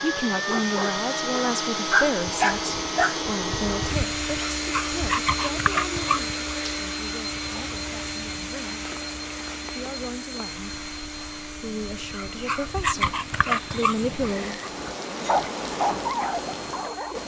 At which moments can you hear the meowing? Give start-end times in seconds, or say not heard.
not heard.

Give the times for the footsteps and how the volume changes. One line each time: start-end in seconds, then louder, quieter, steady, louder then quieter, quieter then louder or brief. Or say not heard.
not heard.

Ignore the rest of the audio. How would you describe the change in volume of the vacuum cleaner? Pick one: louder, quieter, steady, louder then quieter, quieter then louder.
quieter.